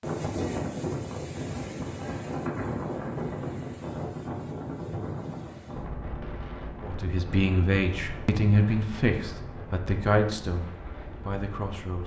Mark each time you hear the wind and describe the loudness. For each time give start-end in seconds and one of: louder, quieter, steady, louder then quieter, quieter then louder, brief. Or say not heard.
0.0-12.0 quieter.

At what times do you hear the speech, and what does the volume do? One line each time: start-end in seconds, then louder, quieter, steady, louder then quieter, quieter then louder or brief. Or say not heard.
6.8-12.0 quieter.